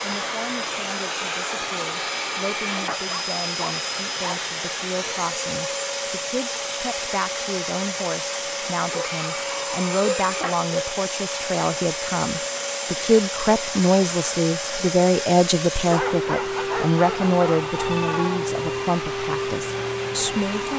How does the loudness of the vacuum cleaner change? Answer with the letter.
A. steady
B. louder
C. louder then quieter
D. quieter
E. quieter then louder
A.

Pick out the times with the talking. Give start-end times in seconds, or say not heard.
0.0-20.7.